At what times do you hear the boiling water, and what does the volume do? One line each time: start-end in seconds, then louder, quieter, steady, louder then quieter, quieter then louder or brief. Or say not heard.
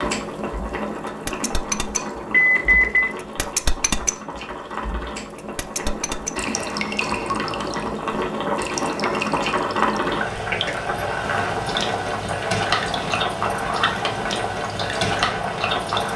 0.0-16.1 louder.